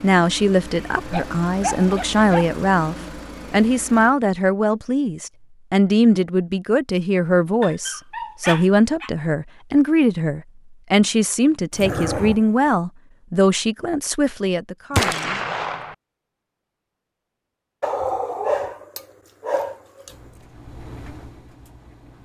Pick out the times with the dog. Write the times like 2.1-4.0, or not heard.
1.1-2.5, 7.6-9.1, 11.7-12.8, 17.8-20.1.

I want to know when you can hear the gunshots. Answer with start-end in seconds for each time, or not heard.
14.9-15.9.